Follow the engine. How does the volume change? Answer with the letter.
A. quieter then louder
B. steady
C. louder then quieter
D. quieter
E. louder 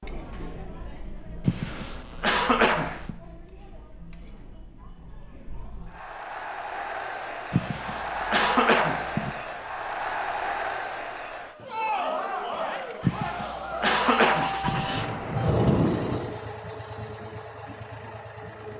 C.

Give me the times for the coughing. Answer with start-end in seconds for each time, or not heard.
1.4-3.1, 7.5-9.3, 13.0-14.8.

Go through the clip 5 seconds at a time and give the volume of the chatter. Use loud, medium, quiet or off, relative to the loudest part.
quiet, loud, loud, off.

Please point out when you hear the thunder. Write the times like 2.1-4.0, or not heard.
14.6-16.2.